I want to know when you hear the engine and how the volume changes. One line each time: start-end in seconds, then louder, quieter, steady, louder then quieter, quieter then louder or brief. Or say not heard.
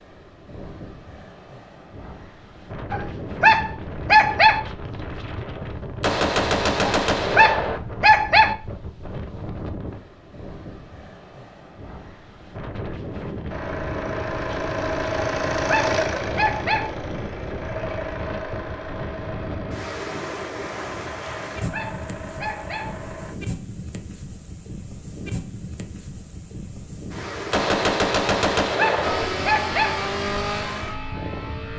13.4-23.4 quieter
29.0-31.7 brief.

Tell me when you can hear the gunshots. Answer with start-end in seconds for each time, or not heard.
6.0-7.8, 27.5-29.3.